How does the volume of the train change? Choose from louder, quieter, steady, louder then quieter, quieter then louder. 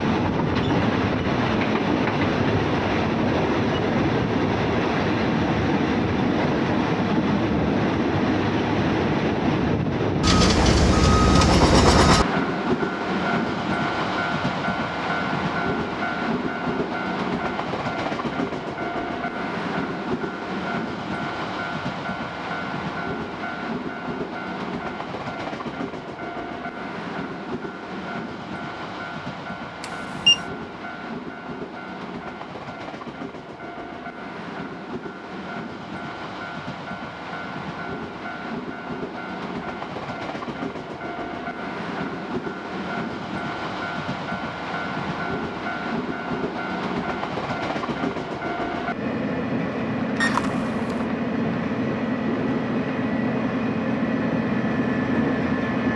quieter then louder.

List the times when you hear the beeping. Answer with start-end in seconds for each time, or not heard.
10.2-12.2, 29.8-30.4, 50.2-51.0.